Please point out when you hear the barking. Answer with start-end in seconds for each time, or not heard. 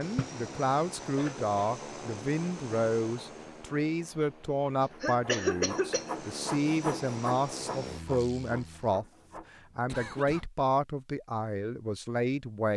not heard.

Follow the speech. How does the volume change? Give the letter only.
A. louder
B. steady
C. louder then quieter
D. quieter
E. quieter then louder
B.